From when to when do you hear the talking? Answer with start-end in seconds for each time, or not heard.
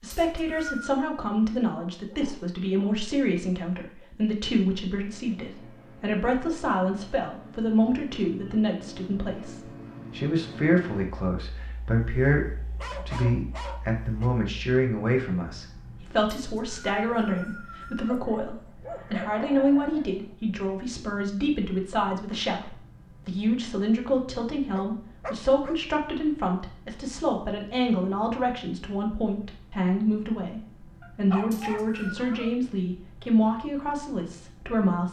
0.0-35.0.